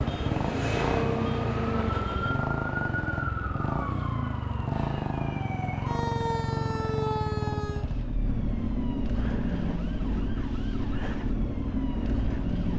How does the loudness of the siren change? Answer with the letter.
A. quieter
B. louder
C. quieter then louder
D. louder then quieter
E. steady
A.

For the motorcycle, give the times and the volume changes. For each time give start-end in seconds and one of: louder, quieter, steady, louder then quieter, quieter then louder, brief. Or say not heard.
0.0-12.7 steady.